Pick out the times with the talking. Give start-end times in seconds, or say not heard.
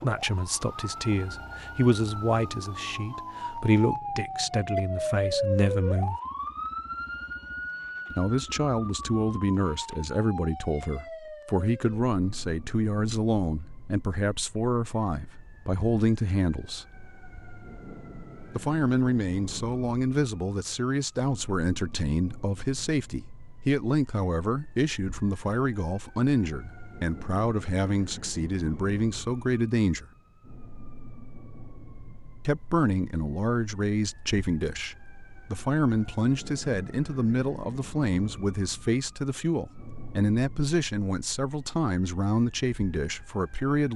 0.0-6.2, 8.1-17.0, 18.5-30.1, 32.5-43.9.